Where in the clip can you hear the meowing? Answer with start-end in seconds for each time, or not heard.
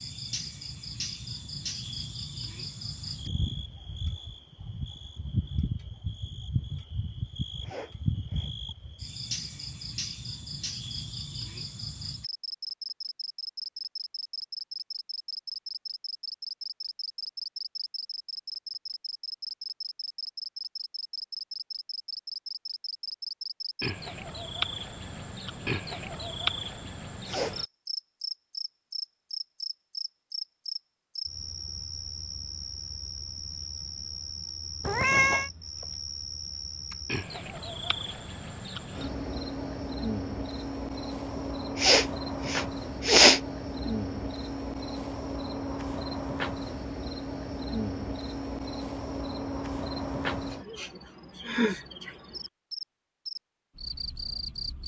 34.8-35.5.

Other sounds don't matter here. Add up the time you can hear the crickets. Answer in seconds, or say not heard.
55 s.